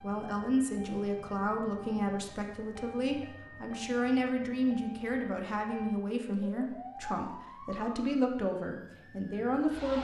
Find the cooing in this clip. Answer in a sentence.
You can't hear the cooing here.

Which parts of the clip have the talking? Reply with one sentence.
You can hear the talking from 0.0 to 9.9 s.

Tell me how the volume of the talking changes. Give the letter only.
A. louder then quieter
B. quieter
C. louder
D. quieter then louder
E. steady
E.